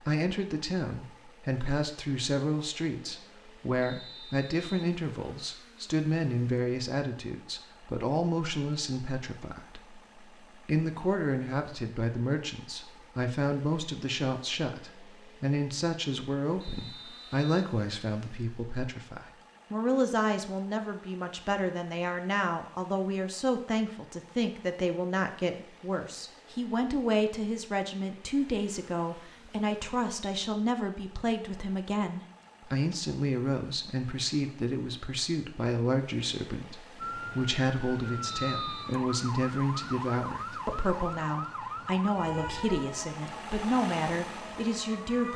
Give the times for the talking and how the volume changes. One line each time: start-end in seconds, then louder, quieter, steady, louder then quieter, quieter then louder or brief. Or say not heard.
0.0-45.3 steady.